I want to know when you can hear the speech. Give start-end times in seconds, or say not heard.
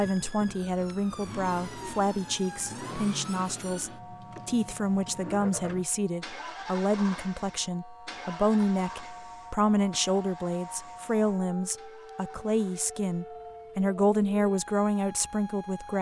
0.0-15.9.